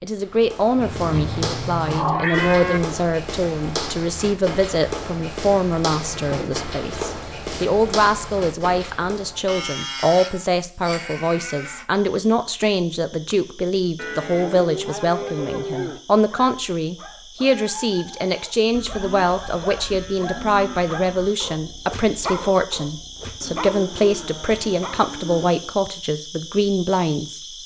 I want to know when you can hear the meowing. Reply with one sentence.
You can hear the meowing from 1.1 to 2.7 s.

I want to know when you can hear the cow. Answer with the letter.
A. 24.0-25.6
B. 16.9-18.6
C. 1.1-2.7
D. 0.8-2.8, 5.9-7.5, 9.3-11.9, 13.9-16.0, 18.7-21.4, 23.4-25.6
D.